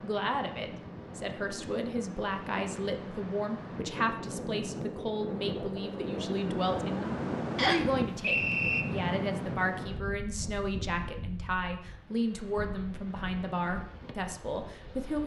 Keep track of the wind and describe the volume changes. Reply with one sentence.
The loudness of the wind goes up, then down.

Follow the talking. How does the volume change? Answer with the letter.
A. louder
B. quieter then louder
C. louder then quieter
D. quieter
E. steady
E.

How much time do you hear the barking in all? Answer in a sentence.
You can't hear the barking here.